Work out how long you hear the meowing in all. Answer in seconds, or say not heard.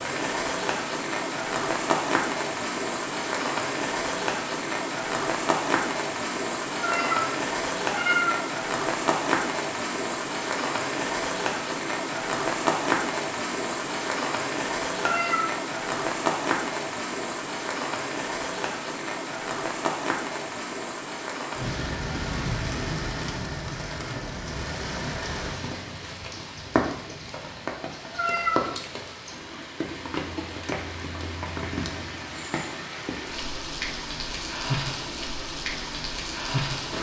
3 s.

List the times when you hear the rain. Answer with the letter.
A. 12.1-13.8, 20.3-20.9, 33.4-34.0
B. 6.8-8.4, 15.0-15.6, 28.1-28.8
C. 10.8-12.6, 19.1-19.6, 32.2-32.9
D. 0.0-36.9
D.